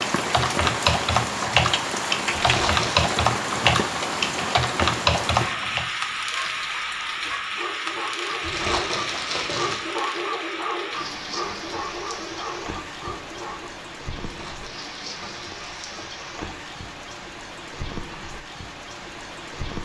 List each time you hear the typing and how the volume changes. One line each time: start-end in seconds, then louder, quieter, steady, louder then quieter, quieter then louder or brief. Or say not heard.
0.0-5.9 steady.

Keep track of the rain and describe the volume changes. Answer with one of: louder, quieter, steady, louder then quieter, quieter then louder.
quieter.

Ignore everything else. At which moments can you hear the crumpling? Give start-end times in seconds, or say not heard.
2.4-3.1, 8.4-9.9, 14.2-16.1.